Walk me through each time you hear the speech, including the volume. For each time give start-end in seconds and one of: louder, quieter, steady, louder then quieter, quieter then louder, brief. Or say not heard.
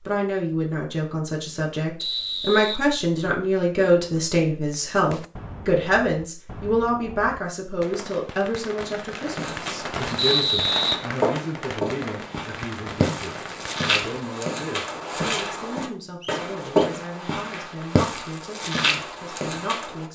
0.1-20.1 quieter.